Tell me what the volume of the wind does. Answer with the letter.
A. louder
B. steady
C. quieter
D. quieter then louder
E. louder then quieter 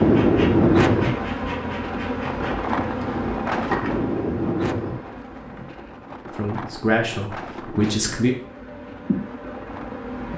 C.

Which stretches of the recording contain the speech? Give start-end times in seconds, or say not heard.
6.3-8.3.